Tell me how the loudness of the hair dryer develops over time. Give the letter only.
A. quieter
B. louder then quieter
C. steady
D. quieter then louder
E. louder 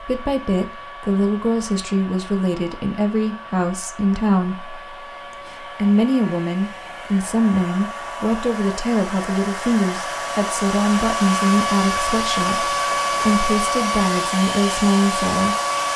E.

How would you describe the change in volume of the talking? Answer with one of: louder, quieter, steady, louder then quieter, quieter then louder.
steady.